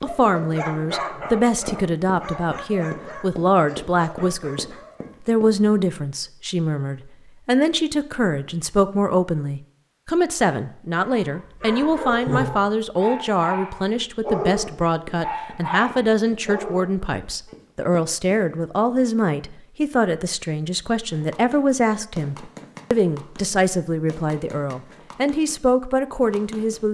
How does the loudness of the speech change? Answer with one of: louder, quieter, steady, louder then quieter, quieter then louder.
steady.